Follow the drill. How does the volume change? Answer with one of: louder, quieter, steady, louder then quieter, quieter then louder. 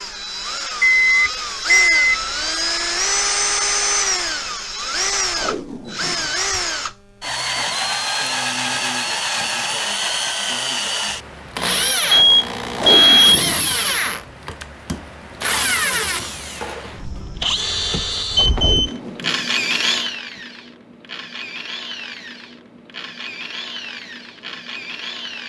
quieter.